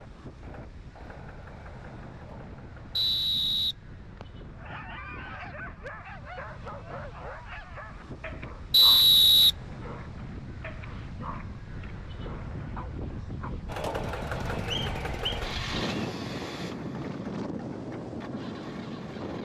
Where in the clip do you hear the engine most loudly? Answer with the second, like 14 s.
14 s.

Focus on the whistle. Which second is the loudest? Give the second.
9 s.